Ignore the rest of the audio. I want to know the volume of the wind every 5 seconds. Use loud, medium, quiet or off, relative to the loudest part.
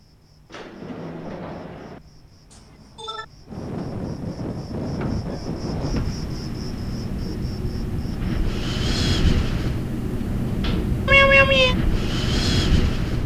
medium, loud, loud.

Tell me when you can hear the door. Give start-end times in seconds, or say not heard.
0.5-2.0, 5.0-6.2, 10.6-11.0.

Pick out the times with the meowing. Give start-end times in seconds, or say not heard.
2.5-3.2, 11.1-11.8.